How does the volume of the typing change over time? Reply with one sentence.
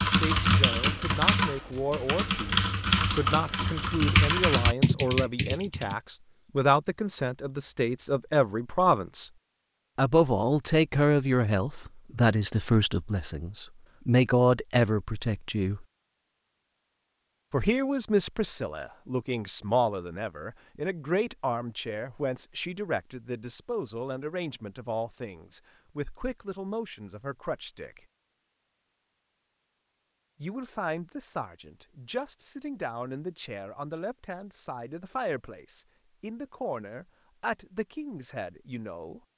The loudness of the typing goes down, then up.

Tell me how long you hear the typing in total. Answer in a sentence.
You can hear the typing for 6 seconds altogether.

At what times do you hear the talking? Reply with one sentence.
You can hear the talking from 0.0 to 9.3 s, from 9.9 to 15.8 s, from 17.5 to 28.0 s and from 30.4 to 39.2 s.